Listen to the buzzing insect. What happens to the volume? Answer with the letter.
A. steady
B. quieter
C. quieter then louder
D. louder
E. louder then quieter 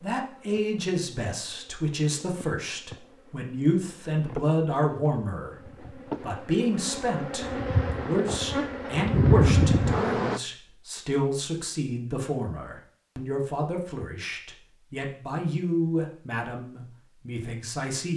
D.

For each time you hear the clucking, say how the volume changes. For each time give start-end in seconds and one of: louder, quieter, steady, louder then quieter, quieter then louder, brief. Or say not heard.
not heard.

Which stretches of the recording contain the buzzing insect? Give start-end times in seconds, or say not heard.
0.0-10.4.